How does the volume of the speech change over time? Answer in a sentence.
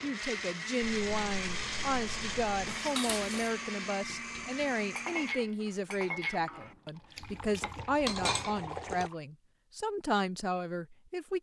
The loudness of the speech stays about the same.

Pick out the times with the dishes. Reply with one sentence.
The dishes can be heard from 2.6 to 9.1 s.